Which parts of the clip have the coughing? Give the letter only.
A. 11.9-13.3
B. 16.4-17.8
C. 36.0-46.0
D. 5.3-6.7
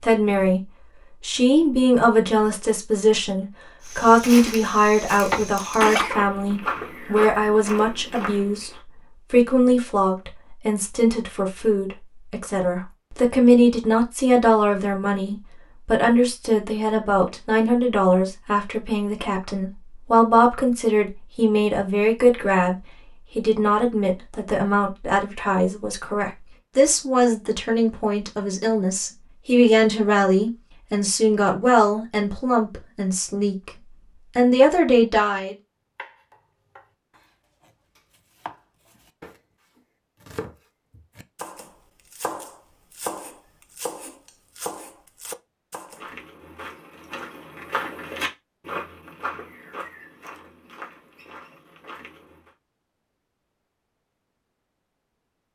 D.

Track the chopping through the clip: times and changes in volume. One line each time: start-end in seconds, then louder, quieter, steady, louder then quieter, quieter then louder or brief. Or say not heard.
36.0-46.0 louder.